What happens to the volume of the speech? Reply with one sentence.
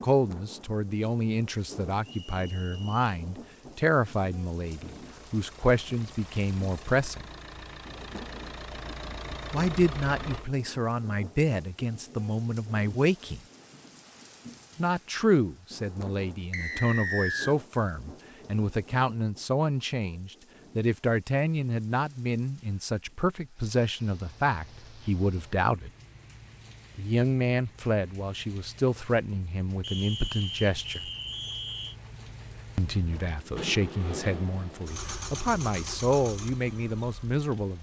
The loudness of the speech stays about the same.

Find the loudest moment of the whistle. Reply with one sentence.
The volume of the whistle peaks at 17 seconds.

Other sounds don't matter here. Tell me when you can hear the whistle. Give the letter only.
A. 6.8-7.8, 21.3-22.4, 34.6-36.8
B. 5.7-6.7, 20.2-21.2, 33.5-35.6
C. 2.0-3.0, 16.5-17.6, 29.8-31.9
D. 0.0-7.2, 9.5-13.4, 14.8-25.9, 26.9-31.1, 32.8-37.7
C.